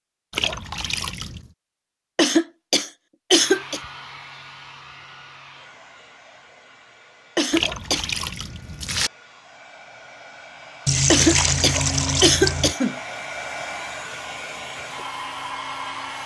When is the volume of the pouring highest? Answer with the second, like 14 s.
11 s.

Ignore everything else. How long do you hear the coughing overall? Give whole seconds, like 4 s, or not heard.
4 s.